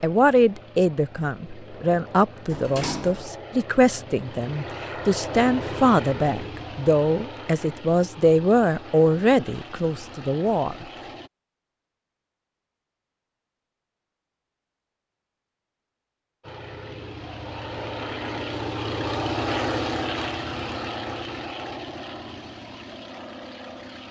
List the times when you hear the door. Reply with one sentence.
The door can be heard from 2.5 to 3.4 s.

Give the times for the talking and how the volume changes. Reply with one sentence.
You can hear the talking from 0.0 to 10.8 s, at a steady volume.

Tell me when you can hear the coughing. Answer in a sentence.
The coughing can't be heard in this clip.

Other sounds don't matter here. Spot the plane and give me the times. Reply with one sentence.
The plane can be heard from 0.0 to 11.3 s and from 16.4 to 24.0 s.